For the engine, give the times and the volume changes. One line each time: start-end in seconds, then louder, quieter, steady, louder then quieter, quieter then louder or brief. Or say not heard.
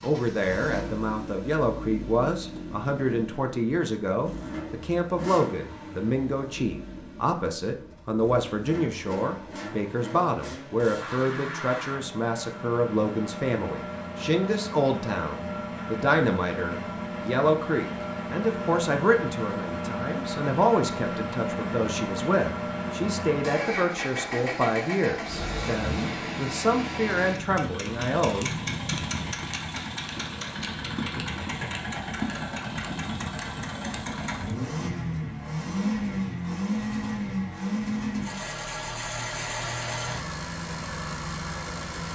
0.0-42.1 louder.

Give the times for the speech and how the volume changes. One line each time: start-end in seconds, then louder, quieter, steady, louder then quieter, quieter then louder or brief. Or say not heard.
0.0-28.5 steady.